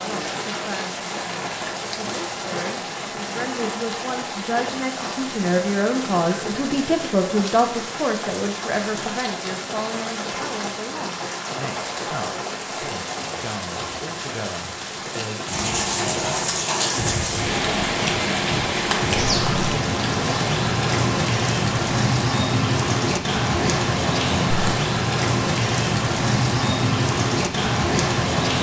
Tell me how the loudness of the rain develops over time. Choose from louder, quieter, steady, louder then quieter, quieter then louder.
louder.